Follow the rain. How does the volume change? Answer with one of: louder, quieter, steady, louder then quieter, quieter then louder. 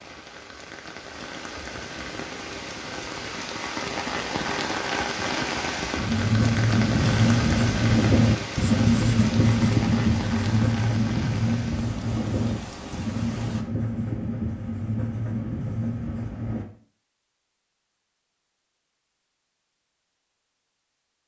louder then quieter.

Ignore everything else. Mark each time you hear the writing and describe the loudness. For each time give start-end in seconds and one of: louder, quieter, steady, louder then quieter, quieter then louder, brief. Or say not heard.
6.0-16.6 quieter.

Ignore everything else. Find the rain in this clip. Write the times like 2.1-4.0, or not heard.
0.0-13.7.